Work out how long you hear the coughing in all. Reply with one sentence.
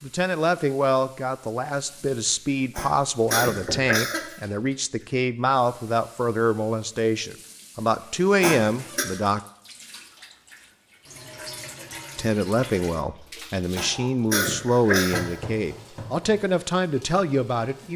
The coughing can be heard for 4 seconds in total.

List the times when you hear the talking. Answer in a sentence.
You can hear the talking from 0.0 to 9.4 s and from 12.2 to 17.9 s.